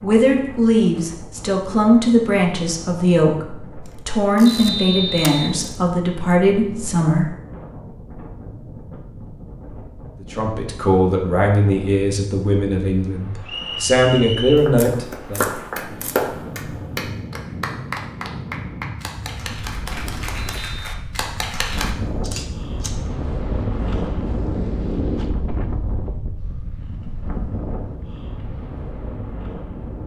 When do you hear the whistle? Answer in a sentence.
You can hear the whistle from 4.5 to 5.5 s, from 13.4 to 14.7 s and from 20.4 to 20.9 s.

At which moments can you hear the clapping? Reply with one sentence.
You can hear the clapping from 14.6 to 21.9 s.